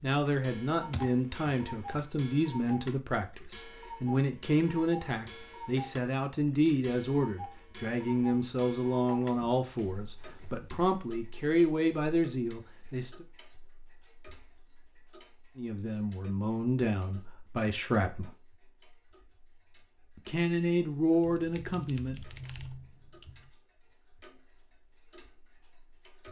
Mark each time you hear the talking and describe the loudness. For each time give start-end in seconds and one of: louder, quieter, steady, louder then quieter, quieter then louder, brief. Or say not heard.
0.0-13.2 steady
15.6-18.3 brief
20.2-22.2 brief.